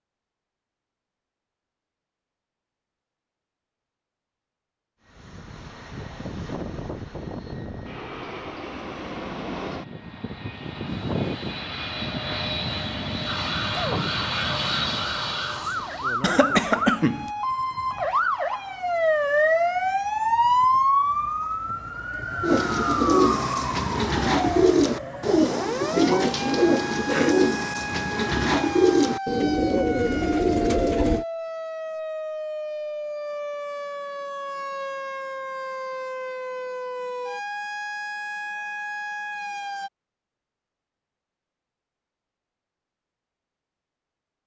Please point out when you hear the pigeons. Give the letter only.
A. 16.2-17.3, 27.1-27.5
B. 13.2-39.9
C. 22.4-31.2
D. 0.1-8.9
C.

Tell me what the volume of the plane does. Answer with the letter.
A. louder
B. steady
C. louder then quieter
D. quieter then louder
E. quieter
A.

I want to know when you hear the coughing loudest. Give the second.
17 s.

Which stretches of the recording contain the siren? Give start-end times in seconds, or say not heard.
13.2-39.9.